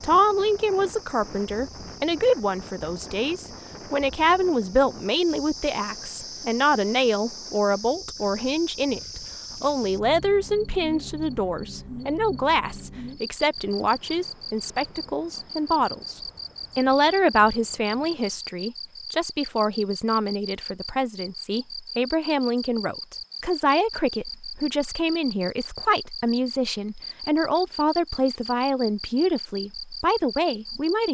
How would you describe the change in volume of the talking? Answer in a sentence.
The volume of the talking stays about the same.